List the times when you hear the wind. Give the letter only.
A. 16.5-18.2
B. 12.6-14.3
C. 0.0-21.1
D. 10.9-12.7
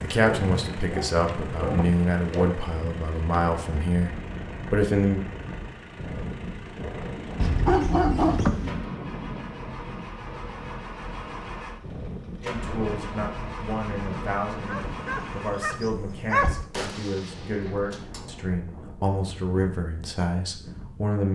C.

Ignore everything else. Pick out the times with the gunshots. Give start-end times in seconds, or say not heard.
16.5-18.2.